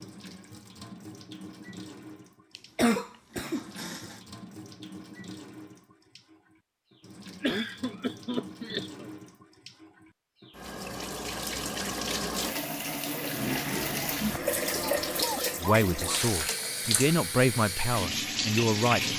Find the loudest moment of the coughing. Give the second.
3 s.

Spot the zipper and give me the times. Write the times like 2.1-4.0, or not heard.
not heard.